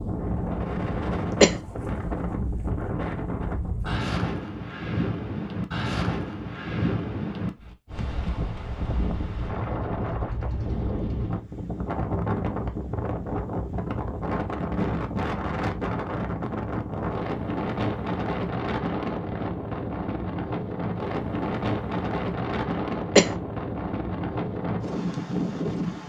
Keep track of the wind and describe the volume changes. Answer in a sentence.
The loudness of the wind stays about the same.